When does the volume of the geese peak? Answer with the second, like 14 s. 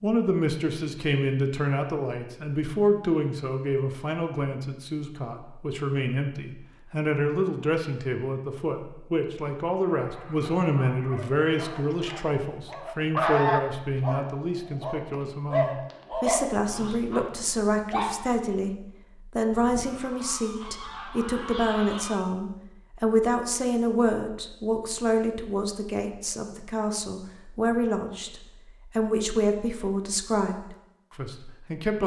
13 s.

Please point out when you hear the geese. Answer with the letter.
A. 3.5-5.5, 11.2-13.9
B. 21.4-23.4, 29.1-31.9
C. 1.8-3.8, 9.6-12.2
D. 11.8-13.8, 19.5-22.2
D.